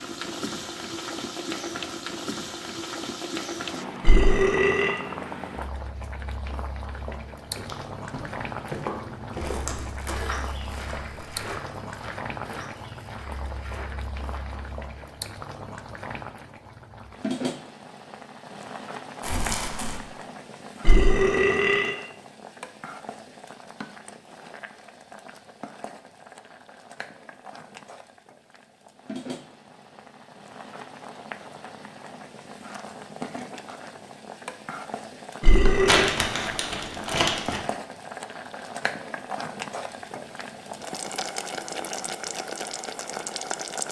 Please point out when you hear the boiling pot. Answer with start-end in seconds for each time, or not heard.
0.0-43.8.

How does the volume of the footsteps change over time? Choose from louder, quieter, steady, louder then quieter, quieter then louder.
quieter.